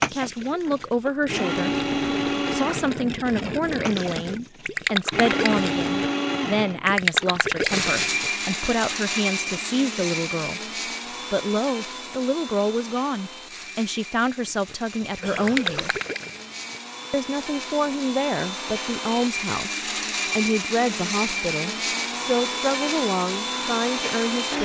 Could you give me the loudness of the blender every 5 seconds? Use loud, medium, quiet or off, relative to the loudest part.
loud, loud, medium, medium, loud.